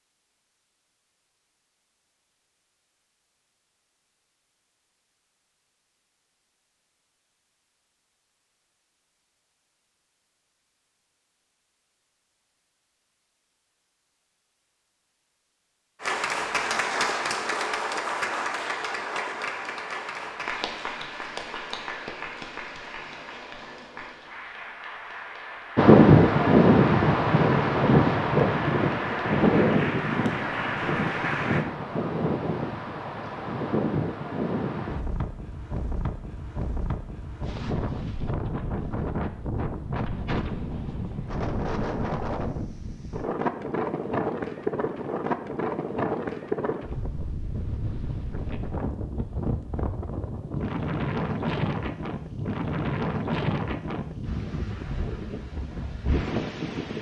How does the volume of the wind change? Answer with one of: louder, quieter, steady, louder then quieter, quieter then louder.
quieter.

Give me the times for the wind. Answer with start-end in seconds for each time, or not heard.
25.8-56.9.